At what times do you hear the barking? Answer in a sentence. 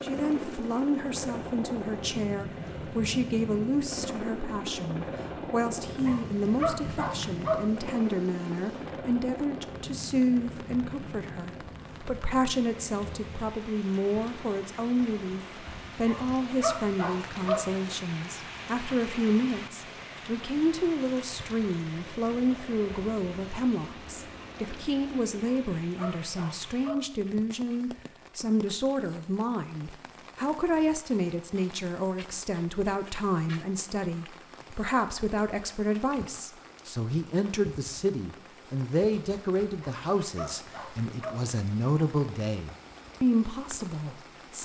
The barking can be heard from 6.0 to 7.7 s, from 16.1 to 17.7 s, from 25.4 to 27.1 s and from 39.8 to 41.5 s.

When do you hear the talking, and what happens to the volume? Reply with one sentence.
You can hear the talking from 0.0 to 44.6 s, at a steady volume.